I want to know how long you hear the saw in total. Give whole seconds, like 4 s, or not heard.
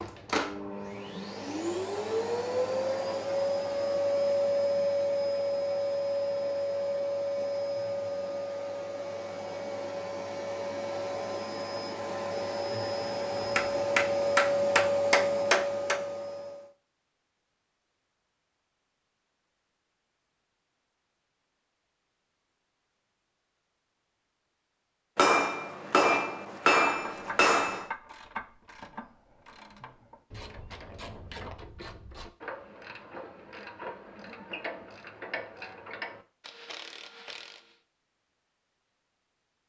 not heard.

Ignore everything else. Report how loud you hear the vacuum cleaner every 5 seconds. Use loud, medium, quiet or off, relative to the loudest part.
loud, loud, loud, loud, off, off, off, off.